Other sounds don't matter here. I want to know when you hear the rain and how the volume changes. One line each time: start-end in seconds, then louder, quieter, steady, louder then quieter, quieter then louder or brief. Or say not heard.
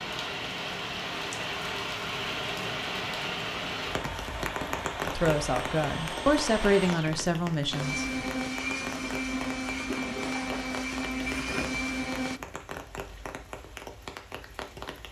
0.0-15.0 quieter.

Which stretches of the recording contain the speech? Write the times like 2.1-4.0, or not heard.
5.0-8.3.